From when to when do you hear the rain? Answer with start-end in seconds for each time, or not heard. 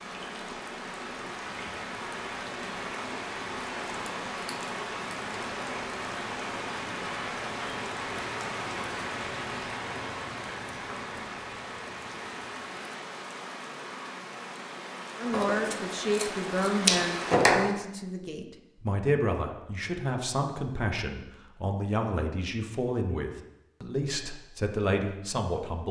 0.0-17.4.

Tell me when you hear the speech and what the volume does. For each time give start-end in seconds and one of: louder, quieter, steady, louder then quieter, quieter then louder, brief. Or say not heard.
15.2-25.8 steady.